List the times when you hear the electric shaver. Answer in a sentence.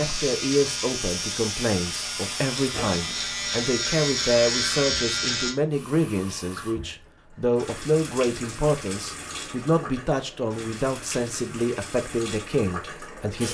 The electric shaver can be heard from 0.0 to 5.5 s.